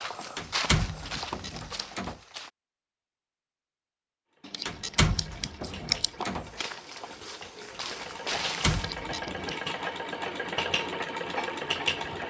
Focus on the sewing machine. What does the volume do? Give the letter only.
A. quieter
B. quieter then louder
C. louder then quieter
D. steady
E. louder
E.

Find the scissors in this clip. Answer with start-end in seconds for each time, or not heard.
1.1-1.9, 4.5-6.1, 8.7-9.5.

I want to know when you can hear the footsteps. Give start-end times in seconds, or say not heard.
0.0-2.5, 6.2-8.9.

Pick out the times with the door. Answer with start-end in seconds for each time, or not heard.
0.3-2.1, 4.7-6.7, 8.3-9.6.